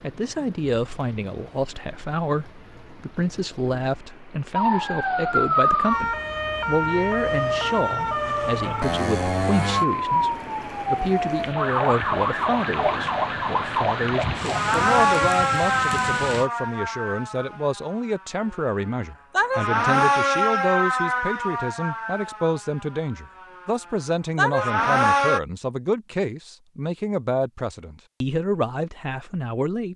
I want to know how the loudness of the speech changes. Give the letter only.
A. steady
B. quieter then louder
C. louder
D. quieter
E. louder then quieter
A.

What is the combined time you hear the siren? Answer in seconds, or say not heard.
21 s.